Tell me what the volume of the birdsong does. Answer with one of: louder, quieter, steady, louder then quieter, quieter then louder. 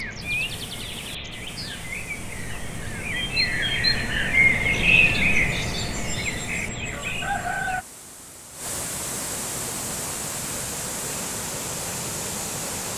louder then quieter.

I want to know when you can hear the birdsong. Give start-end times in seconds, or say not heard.
0.0-7.8.